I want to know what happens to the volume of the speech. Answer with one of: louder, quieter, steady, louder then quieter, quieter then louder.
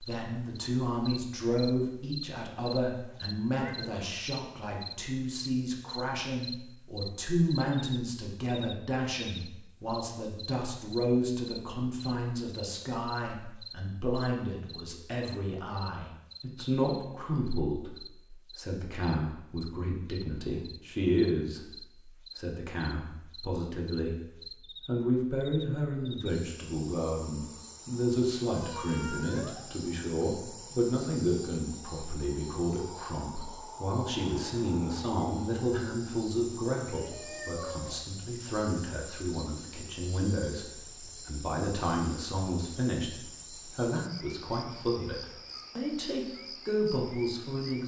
steady.